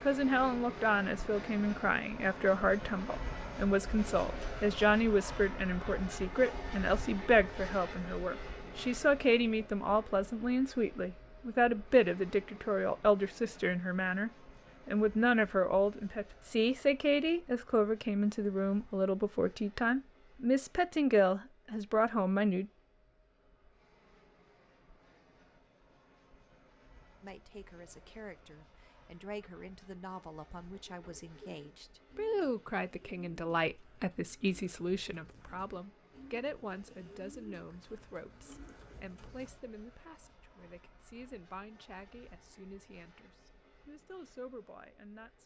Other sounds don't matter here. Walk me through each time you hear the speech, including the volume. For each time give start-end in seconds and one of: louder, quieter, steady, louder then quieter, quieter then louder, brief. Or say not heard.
0.0-22.7 steady
27.2-45.4 louder then quieter.